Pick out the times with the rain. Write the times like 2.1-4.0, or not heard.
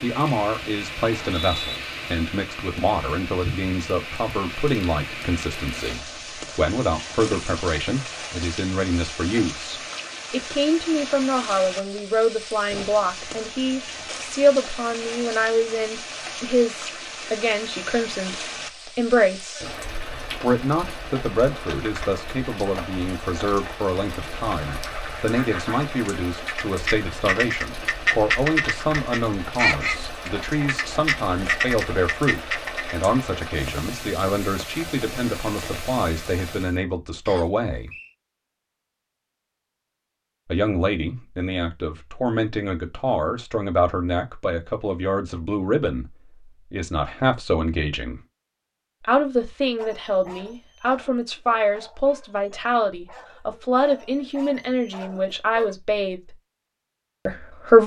0.0-36.8.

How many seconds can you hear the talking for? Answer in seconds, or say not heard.
52 s.